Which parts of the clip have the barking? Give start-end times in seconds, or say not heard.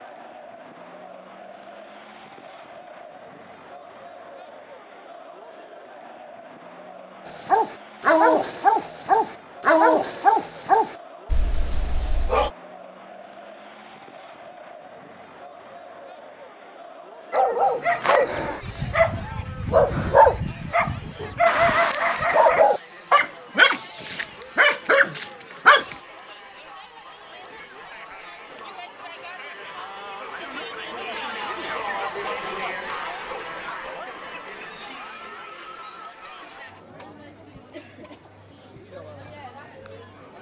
7.5-12.5, 17.3-25.9.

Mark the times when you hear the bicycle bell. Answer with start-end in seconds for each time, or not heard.
21.4-22.5.